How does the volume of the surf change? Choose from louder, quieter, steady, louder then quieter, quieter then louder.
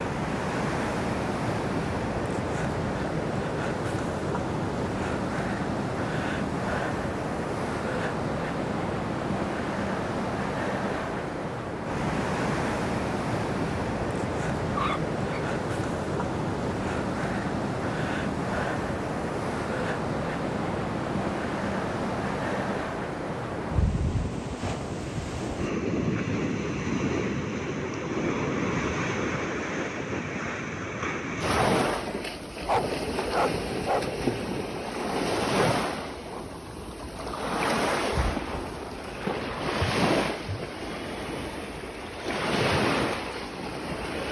steady.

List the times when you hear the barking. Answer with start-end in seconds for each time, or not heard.
14.8-15.4, 32.6-34.1.